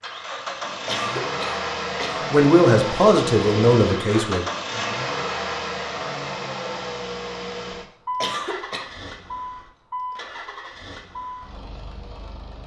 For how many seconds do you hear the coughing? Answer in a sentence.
The coughing can be heard for 2 seconds in total.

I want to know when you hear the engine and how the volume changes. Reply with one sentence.
You can hear the engine from 0.0 to 12.6 s, getting quieter.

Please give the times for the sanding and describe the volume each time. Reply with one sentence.
The sanding can't be heard in this clip.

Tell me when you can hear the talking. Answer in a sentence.
You can hear the talking from 2.3 to 4.5 s.